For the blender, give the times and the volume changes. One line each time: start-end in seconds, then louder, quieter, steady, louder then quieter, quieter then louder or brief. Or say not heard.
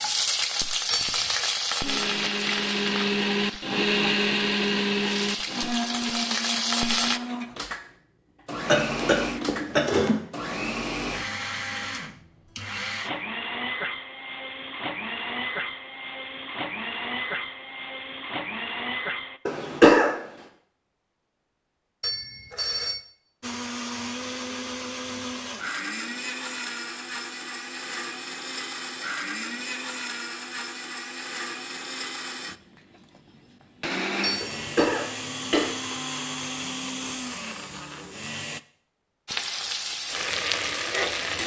1.8-19.4 quieter
23.4-38.6 steady.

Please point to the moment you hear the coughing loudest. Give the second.
20 s.